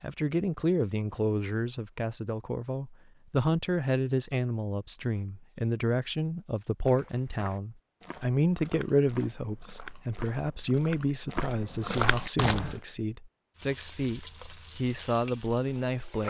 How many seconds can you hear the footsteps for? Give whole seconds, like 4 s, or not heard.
6 s.